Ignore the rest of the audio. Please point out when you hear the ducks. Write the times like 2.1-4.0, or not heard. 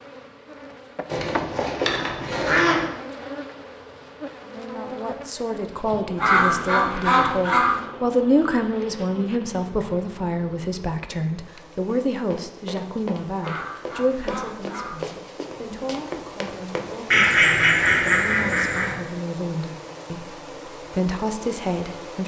1.1-2.9, 6.2-7.8, 13.4-14.9, 17.1-18.9.